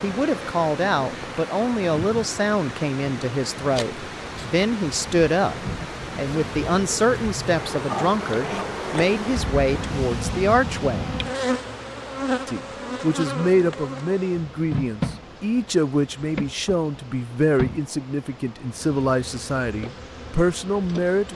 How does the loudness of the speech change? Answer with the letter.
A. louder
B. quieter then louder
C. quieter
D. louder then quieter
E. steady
E.